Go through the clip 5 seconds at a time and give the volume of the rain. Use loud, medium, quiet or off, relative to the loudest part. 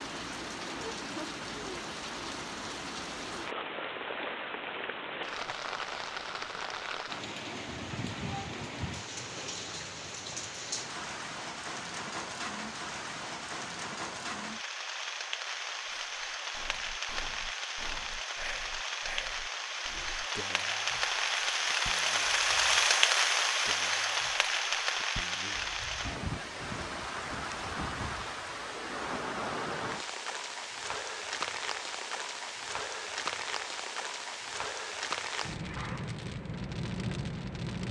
medium, medium, medium, medium, loud, medium, medium, medium.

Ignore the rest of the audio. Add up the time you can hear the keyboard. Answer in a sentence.
The keyboard can't be heard in this clip.